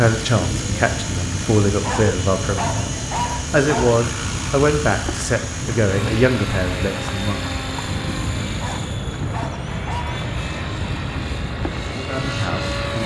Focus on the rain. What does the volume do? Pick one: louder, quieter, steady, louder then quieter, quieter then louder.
steady.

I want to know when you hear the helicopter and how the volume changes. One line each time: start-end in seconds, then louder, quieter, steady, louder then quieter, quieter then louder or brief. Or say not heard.
0.0-13.0 steady.